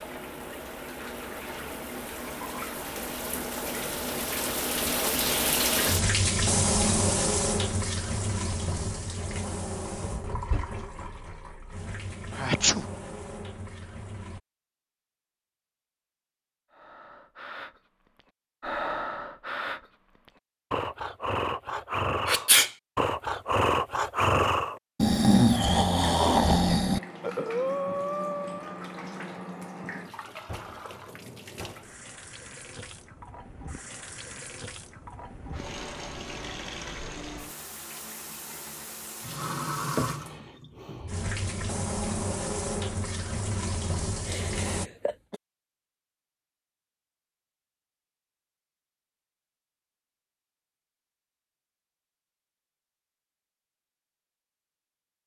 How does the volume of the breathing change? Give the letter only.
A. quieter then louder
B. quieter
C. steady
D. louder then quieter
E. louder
E.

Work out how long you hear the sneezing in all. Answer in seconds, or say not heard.
2 s.